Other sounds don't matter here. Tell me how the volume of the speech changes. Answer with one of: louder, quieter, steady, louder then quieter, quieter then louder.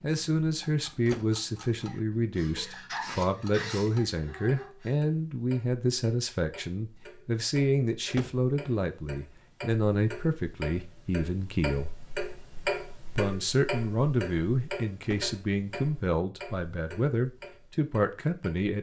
steady.